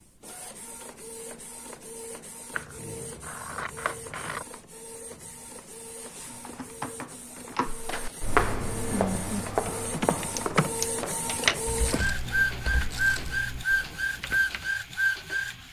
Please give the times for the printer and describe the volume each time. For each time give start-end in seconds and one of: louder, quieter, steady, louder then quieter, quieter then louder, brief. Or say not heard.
0.0-15.6 louder.